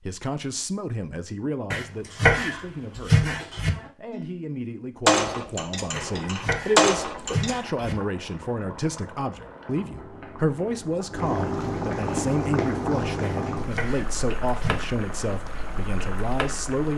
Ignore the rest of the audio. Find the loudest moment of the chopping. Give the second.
2 s.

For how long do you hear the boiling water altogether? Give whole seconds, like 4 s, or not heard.
11 s.